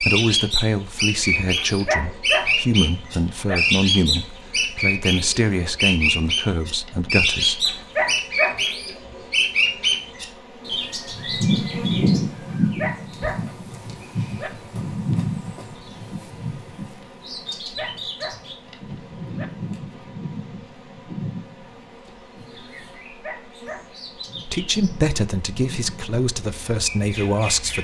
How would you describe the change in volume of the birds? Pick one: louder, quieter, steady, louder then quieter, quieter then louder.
quieter.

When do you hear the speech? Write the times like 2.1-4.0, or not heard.
0.0-7.7, 24.4-27.7.